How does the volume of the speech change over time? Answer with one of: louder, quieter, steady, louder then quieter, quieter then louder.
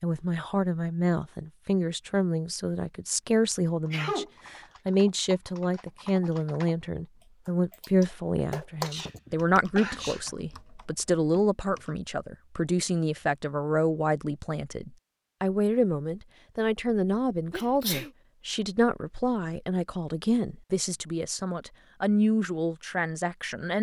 steady.